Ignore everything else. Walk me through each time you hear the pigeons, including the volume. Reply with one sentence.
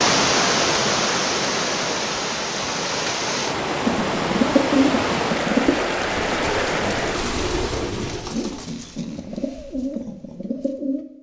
You can hear the pigeons from 3.9 to 11.1 s, getting quieter.